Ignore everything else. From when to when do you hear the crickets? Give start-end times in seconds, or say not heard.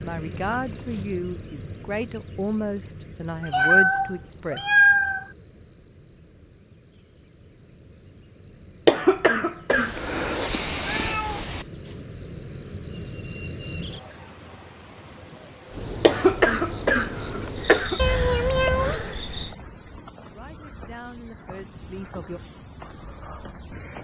0.0-23.9.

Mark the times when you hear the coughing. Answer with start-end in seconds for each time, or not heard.
8.8-10.1, 16.0-18.0.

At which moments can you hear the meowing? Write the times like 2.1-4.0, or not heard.
3.4-5.2, 9.7-11.7, 17.9-19.0.